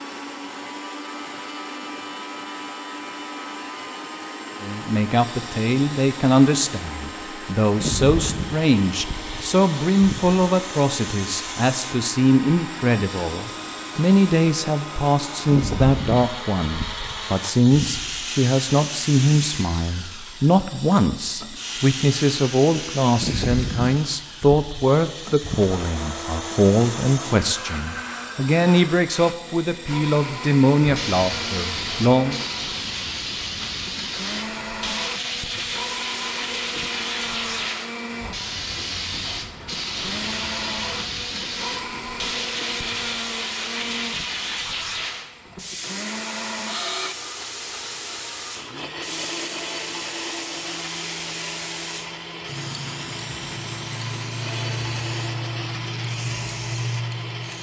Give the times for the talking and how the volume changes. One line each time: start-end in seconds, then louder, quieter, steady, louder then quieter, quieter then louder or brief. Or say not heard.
4.6-32.4 steady.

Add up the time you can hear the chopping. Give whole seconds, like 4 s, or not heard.
not heard.